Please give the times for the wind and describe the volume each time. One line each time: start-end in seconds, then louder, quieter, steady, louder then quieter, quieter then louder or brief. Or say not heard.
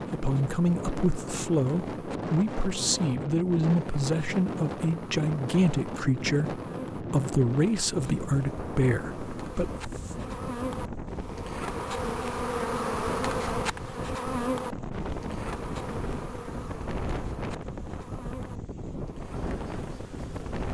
0.0-20.7 steady.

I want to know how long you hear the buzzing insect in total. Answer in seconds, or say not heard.
21 s.